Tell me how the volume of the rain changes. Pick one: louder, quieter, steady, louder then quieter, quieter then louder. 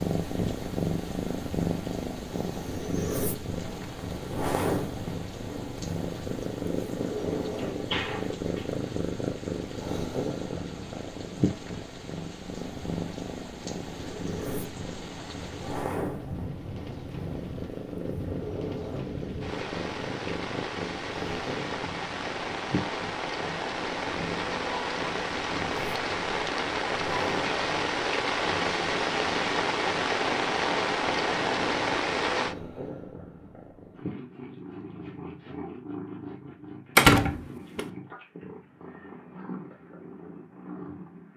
louder.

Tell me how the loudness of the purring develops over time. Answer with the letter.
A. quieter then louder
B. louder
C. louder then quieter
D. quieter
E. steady
D.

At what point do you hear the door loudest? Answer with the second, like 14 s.
37 s.